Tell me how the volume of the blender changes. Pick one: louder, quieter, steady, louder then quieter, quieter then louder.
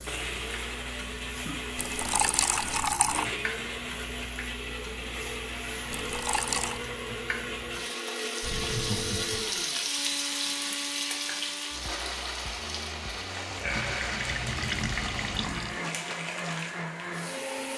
steady.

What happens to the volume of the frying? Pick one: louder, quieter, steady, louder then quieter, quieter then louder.
louder then quieter.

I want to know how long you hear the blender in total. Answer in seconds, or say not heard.
18 s.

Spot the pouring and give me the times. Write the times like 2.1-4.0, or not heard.
1.8-3.2, 5.9-6.8, 13.8-15.8.